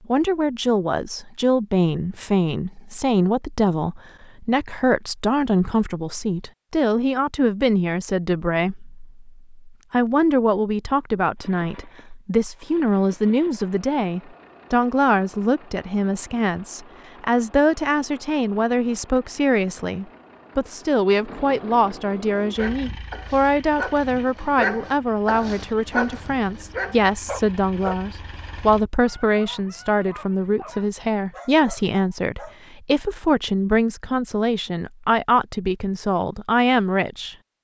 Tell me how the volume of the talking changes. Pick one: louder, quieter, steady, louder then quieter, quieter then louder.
steady.